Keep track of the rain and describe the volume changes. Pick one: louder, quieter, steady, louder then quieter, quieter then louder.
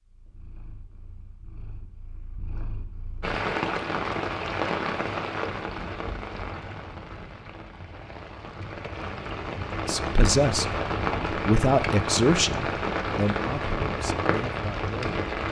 quieter then louder.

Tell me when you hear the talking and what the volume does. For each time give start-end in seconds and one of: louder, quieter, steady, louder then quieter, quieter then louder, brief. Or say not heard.
9.8-15.2 quieter.